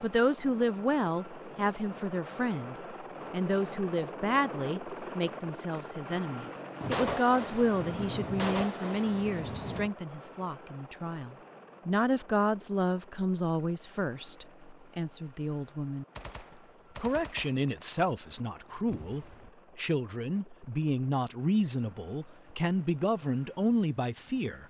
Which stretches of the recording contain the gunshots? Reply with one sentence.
You can hear the gunshots from 6.8 to 9.9 s and from 16.1 to 19.5 s.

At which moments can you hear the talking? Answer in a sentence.
The talking can be heard from 0.0 to 16.1 s and from 16.9 to 24.6 s.